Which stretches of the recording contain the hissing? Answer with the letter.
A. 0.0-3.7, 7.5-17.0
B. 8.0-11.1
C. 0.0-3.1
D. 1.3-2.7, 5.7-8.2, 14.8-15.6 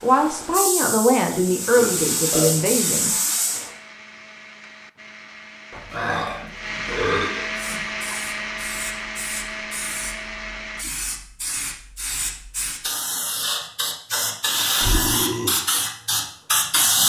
A.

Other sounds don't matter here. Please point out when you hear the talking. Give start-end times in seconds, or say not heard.
0.0-3.1.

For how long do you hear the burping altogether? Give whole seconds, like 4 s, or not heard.
5 s.